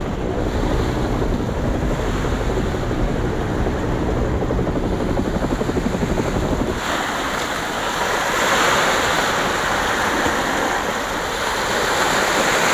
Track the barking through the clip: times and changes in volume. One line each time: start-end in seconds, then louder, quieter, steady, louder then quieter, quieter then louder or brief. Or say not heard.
not heard.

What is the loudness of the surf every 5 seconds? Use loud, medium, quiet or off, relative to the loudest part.
quiet, loud, loud.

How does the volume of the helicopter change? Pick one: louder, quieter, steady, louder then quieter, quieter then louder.
quieter.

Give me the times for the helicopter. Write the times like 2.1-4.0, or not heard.
0.0-12.4.